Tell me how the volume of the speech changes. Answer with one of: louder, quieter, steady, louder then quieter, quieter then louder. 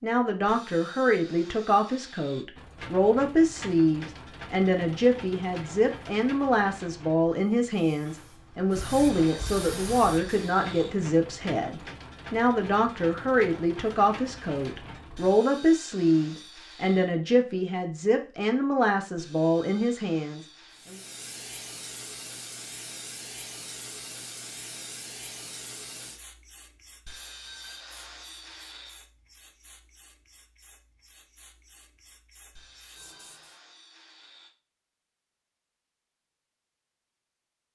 steady.